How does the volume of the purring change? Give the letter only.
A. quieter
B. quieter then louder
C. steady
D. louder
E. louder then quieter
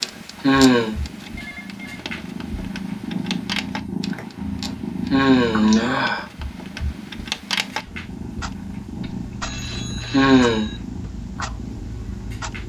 E.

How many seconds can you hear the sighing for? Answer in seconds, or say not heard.
2 s.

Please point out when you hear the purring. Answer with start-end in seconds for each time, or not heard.
0.0-12.6.